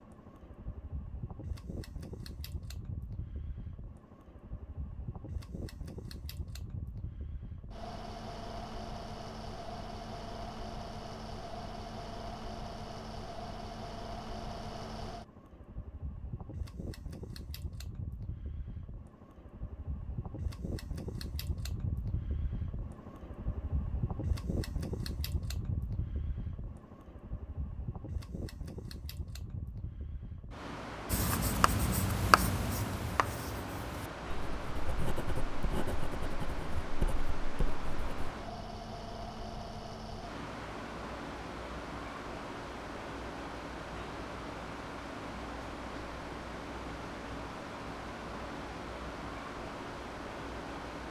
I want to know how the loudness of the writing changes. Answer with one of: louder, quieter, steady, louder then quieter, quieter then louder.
quieter.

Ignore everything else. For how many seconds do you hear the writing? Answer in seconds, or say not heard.
7 s.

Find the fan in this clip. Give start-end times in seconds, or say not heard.
0.0-51.0.